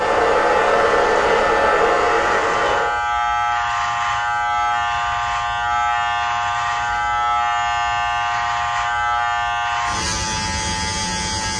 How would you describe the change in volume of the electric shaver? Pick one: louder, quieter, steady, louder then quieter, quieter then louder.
steady.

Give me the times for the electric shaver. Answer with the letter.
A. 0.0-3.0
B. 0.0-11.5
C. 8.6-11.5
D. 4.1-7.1
B.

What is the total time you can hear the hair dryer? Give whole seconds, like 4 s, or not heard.
3 s.